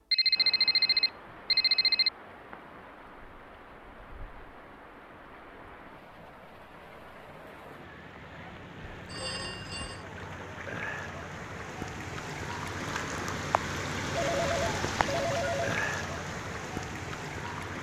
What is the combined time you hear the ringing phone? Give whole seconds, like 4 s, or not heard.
5 s.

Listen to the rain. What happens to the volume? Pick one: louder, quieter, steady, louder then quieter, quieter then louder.
louder.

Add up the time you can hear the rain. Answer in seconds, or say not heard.
18 s.